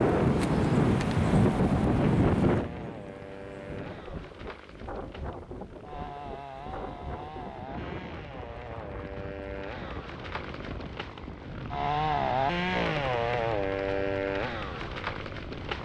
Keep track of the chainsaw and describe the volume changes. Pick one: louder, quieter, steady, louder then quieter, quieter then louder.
louder.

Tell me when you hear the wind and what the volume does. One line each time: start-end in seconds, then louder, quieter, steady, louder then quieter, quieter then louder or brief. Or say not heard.
0.0-15.8 quieter.